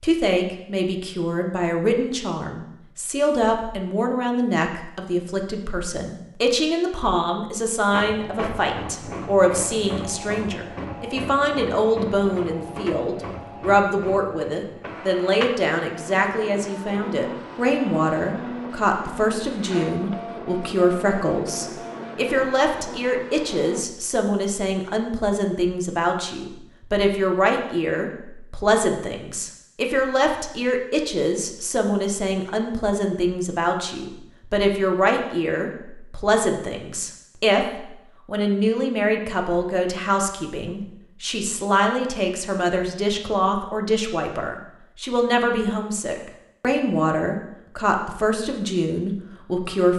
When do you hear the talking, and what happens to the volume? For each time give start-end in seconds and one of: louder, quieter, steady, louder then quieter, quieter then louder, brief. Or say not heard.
0.0-49.9 steady.